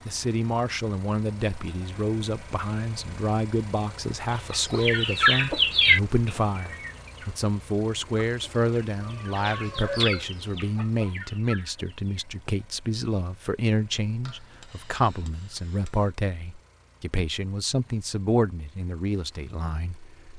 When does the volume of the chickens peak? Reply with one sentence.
The loudest moment of the chickens is at 6 seconds.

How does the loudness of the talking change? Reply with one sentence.
The volume of the talking stays about the same.